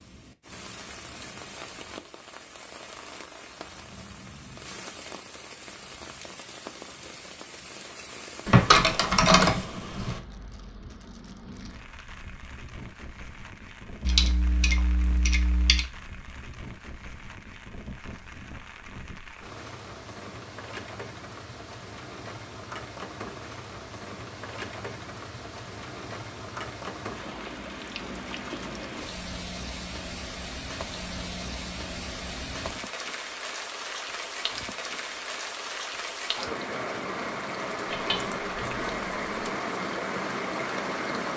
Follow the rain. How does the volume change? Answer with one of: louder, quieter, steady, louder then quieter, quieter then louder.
louder.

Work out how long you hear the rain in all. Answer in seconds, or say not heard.
41 s.